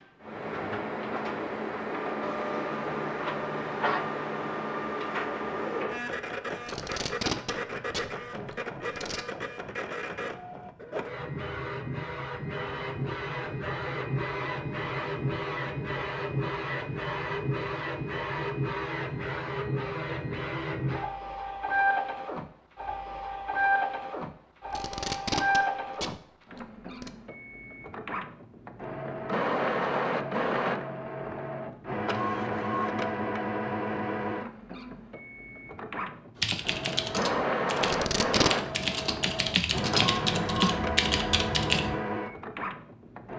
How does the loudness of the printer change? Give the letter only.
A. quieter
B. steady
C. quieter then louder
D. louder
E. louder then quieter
B.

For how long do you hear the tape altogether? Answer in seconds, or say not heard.
6 s.